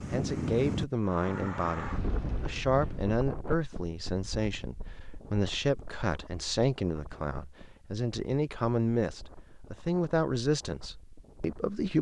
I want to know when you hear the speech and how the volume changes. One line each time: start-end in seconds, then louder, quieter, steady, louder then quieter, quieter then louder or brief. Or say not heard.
0.1-11.9 steady.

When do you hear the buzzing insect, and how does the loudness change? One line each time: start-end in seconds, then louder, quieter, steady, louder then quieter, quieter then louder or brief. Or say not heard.
not heard.